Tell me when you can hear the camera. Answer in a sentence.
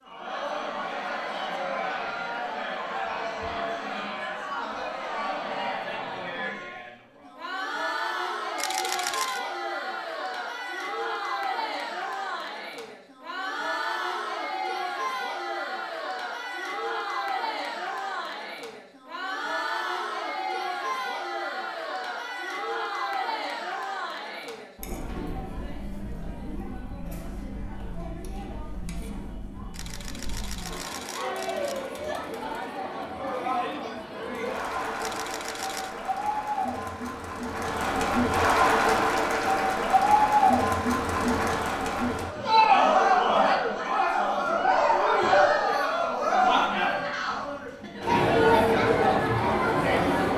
You can hear the camera from 8.6 to 9.4 s, from 29.7 to 31.8 s and from 35.0 to 36.0 s.